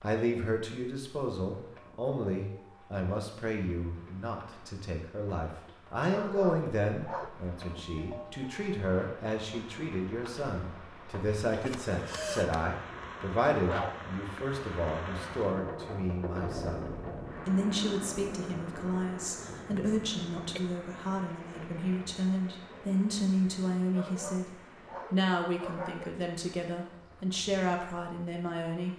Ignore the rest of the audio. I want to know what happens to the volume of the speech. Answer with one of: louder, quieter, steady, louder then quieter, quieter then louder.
steady.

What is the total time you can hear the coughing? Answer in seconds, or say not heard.
2 s.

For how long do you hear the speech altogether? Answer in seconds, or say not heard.
28 s.